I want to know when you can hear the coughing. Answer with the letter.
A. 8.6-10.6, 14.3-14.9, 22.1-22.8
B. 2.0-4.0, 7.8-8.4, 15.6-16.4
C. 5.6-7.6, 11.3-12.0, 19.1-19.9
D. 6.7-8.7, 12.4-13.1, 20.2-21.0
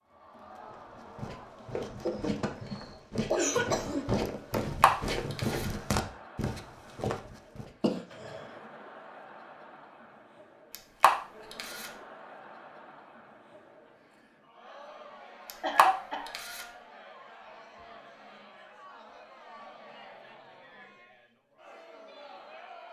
B.